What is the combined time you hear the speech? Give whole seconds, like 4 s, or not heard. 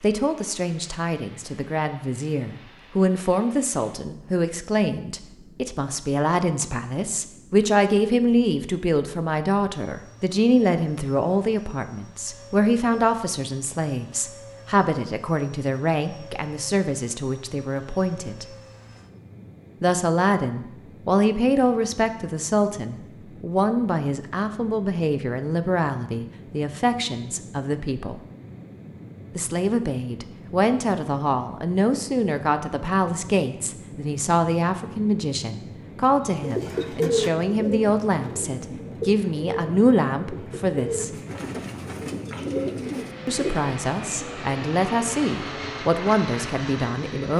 43 s.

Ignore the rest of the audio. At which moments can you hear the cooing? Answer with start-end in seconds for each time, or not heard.
36.2-43.7.